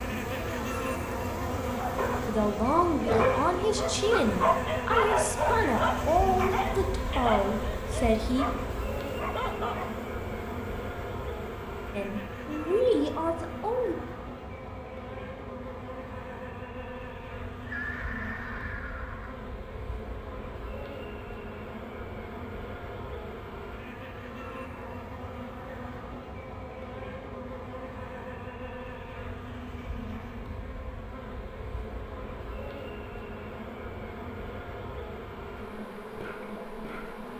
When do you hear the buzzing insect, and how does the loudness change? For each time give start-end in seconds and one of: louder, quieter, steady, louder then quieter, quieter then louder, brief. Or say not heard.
0.0-37.3 quieter.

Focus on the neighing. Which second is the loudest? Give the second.
18 s.